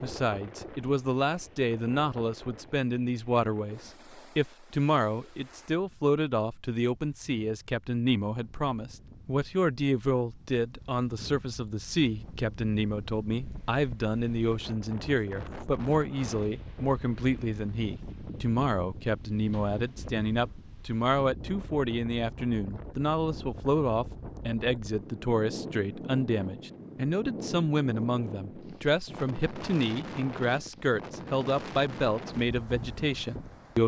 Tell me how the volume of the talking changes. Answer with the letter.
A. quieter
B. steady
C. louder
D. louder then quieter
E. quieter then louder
B.